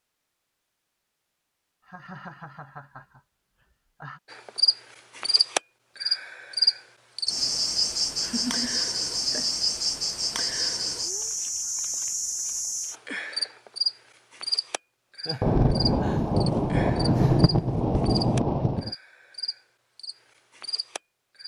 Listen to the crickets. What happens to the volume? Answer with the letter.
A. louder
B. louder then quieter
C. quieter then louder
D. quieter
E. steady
D.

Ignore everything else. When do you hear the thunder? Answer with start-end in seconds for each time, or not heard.
15.4-18.9.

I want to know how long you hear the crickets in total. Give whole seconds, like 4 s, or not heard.
17 s.